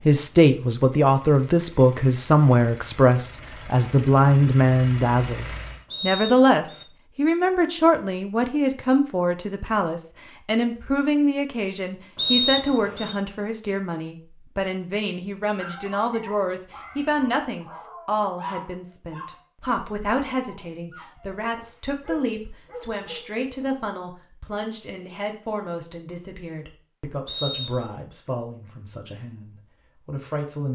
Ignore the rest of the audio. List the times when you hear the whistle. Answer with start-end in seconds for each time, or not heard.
5.9-6.8, 12.2-13.2, 27.2-27.9.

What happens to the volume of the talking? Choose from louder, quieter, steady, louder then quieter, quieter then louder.
quieter.